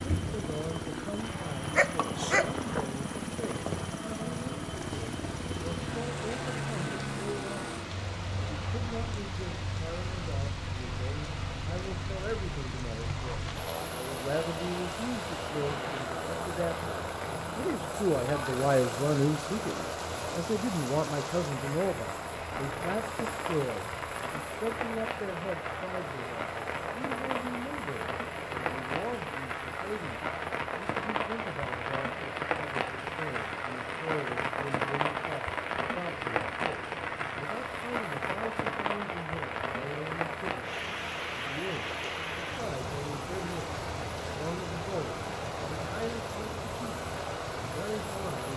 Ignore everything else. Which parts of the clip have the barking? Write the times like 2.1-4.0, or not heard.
1.6-2.9.